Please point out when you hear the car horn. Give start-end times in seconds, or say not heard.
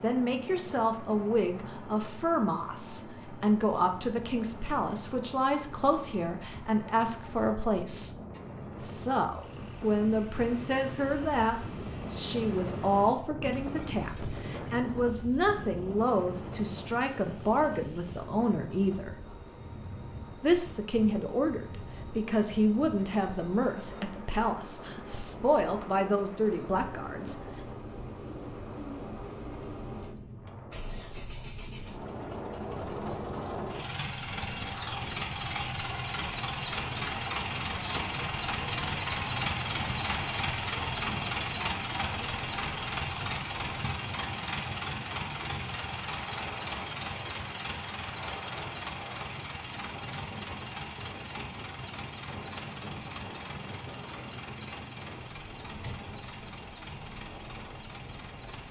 not heard.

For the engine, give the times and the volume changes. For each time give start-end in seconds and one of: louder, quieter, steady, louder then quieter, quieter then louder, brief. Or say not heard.
0.0-58.6 louder then quieter.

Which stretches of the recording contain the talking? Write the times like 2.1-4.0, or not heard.
0.0-8.2, 8.8-19.1, 20.4-27.4.